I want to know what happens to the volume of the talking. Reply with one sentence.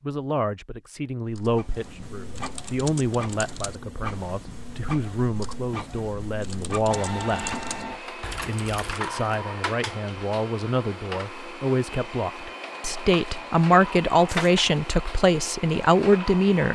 The volume of the talking goes up.